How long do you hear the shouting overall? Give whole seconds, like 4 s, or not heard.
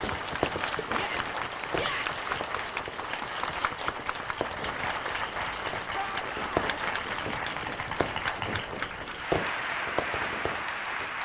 2 s.